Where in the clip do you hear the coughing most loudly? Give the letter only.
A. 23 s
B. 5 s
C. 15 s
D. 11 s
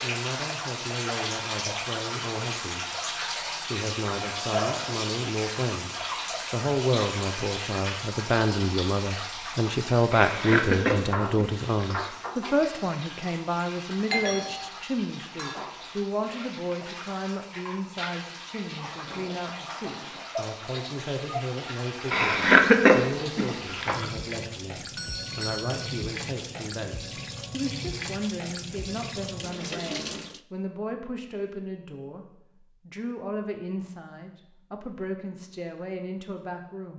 A.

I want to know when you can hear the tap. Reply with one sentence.
You can hear the tap from 0.0 to 30.4 s.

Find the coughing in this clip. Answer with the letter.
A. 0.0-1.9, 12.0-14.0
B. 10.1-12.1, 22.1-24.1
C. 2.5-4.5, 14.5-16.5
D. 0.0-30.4
B.